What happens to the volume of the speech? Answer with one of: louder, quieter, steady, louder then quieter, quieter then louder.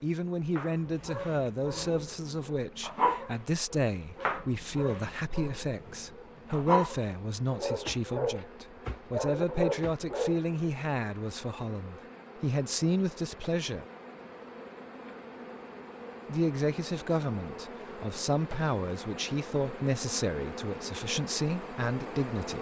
steady.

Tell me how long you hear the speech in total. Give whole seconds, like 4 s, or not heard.
20 s.